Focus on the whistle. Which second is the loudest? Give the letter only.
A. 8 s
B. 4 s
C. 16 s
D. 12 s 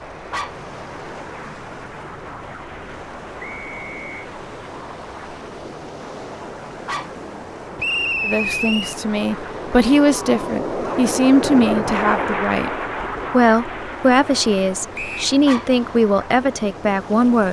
A.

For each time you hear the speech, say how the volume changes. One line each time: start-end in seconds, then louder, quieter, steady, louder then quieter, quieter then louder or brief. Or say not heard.
8.2-17.4 steady.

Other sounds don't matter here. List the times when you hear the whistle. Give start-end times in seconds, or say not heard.
3.4-4.2, 7.8-8.9, 14.9-15.3.